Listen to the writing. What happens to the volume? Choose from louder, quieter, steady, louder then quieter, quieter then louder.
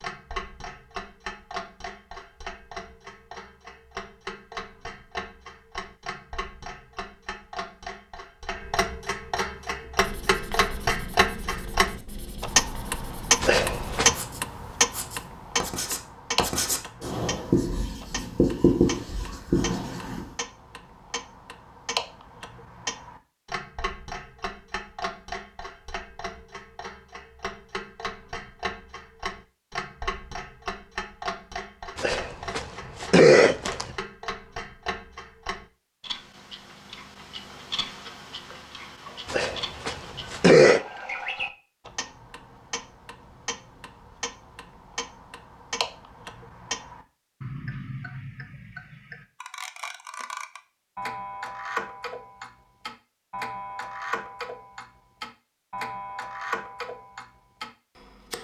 louder.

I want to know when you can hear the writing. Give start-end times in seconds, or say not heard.
10.0-20.2.